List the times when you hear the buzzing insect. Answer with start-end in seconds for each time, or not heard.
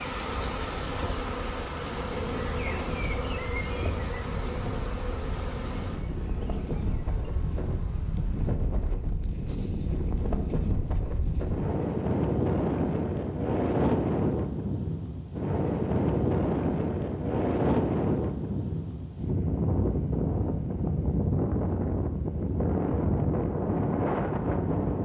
0.0-8.6.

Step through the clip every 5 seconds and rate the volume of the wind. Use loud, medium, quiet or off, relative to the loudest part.
quiet, medium, loud, loud, loud.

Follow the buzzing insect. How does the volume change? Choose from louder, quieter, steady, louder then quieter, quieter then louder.
quieter.